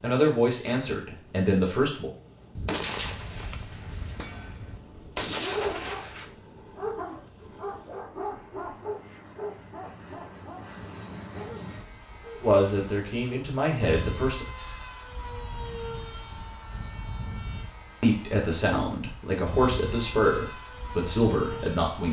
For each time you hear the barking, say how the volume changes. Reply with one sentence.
The barking can be heard from 4.8 to 12.5 s, getting quieter.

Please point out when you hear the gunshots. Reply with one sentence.
The gunshots can be heard from 2.5 to 6.3 s.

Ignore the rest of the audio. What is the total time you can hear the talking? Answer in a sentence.
You can hear the talking for 8 seconds altogether.